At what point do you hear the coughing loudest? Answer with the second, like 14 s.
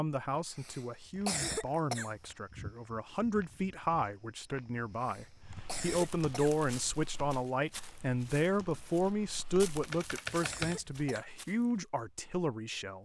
1 s.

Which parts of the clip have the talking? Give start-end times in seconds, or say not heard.
0.0-13.0.